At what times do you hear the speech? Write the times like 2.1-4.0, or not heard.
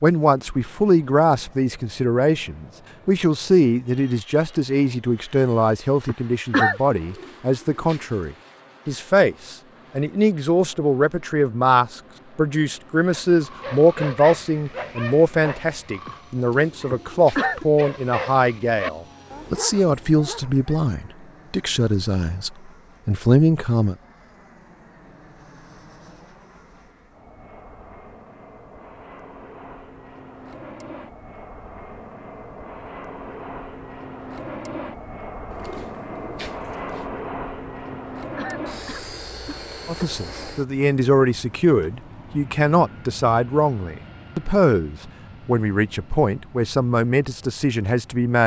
0.0-23.9, 39.9-48.4.